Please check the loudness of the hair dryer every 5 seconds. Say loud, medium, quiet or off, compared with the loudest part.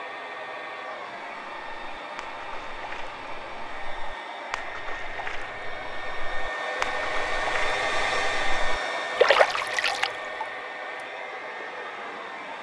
medium, loud, medium.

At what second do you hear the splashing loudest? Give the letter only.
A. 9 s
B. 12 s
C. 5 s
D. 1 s
A.